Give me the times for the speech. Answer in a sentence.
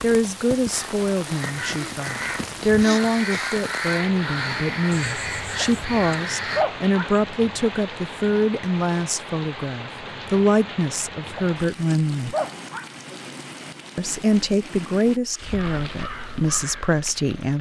You can hear the speech from 0.0 to 12.3 s and from 13.9 to 17.5 s.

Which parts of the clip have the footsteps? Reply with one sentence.
You can't hear the footsteps here.